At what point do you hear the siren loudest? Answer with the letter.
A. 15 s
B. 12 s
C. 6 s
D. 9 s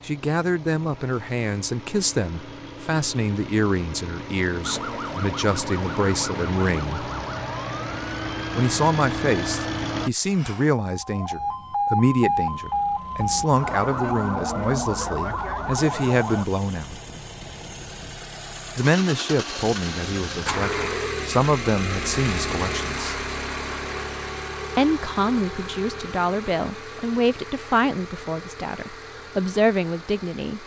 B.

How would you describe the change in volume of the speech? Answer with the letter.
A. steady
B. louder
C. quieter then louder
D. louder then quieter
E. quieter
A.